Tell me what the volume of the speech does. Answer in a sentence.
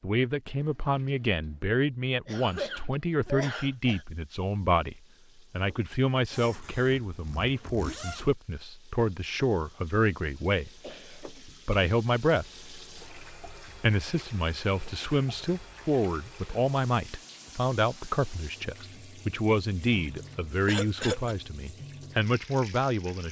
The loudness of the speech stays about the same.